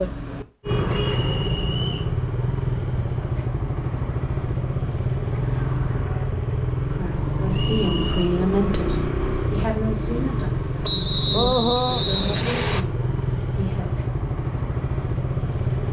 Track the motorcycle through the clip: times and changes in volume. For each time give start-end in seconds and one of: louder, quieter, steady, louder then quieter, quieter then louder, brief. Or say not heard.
0.0-15.8 steady.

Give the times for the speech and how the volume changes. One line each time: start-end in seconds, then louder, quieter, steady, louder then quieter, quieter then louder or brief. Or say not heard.
6.9-13.9 quieter.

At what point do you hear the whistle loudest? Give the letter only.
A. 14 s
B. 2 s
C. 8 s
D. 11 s
D.